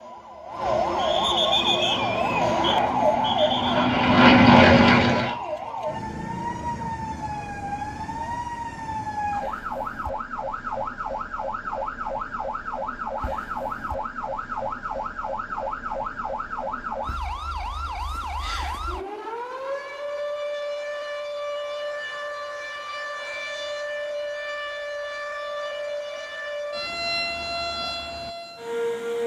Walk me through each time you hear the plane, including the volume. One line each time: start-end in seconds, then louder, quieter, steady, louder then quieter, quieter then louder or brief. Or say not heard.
1.4-5.4 louder.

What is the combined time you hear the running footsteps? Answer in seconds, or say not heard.
not heard.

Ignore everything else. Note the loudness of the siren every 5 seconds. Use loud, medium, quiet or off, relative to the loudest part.
loud, medium, medium, medium, medium, medium.